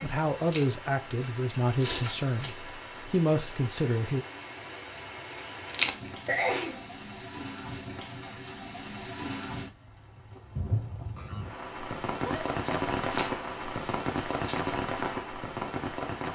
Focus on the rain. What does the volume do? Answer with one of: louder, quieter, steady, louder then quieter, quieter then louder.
louder.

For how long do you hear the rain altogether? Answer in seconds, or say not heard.
16 s.